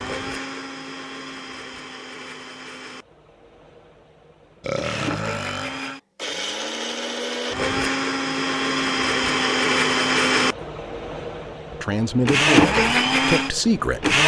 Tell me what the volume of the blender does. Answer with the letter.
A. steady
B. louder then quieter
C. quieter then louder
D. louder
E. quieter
D.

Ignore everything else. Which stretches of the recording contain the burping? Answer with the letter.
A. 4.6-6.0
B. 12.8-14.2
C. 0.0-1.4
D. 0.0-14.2
A.